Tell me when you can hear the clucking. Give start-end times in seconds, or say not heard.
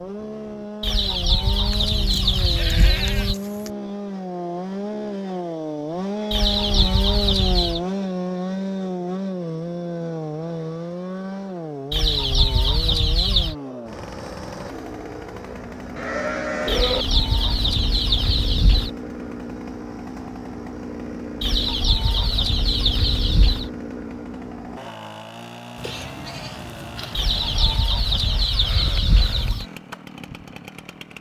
0.8-3.4, 6.3-7.8, 11.9-13.6, 16.6-18.9, 21.4-23.7, 27.1-29.6.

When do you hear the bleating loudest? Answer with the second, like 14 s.
17 s.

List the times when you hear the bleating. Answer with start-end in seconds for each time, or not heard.
1.7-3.7, 15.9-17.1, 25.8-27.8.